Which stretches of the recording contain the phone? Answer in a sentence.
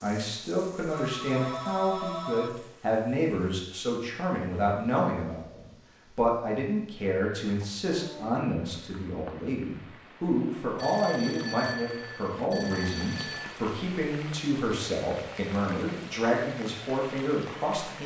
You can hear the phone from 0.9 to 2.5 s and from 10.8 to 13.5 s.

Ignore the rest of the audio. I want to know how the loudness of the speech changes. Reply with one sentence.
The loudness of the speech stays about the same.